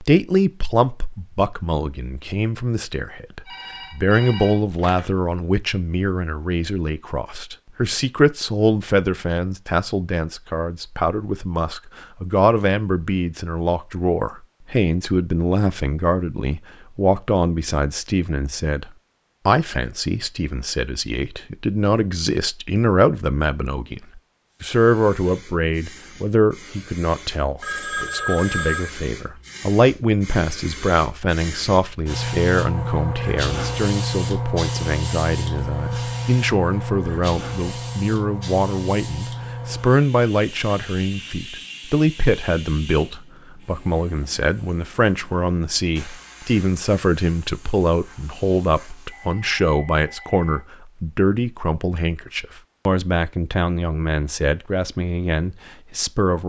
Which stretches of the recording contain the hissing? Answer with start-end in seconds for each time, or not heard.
24.5-49.4.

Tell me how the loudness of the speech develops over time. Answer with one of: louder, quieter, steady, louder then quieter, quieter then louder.
steady.